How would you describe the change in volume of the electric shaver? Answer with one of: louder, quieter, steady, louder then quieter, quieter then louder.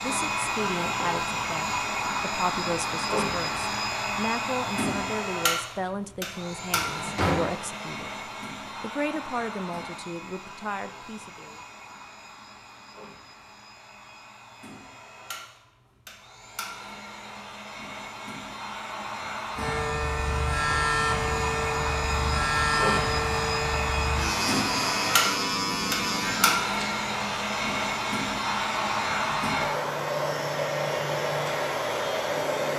quieter.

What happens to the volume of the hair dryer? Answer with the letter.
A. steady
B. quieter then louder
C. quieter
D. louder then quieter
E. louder
B.